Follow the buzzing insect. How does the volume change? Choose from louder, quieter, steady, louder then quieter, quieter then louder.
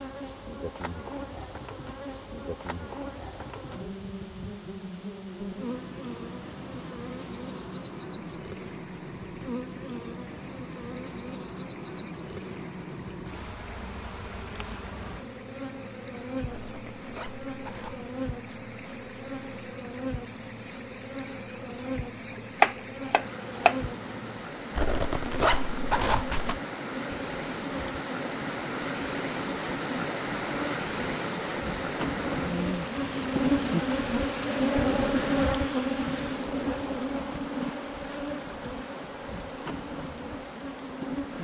louder.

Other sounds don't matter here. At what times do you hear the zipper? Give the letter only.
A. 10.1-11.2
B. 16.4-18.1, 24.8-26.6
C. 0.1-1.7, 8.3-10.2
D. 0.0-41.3
B.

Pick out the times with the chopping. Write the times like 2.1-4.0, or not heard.
22.6-23.8.